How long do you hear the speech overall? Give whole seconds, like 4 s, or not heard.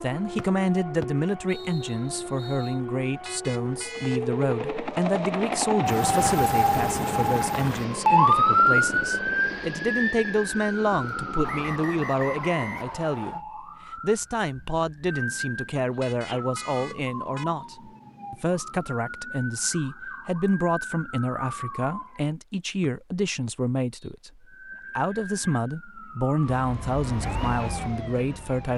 29 s.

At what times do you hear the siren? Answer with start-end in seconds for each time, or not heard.
0.0-22.3, 24.4-28.7.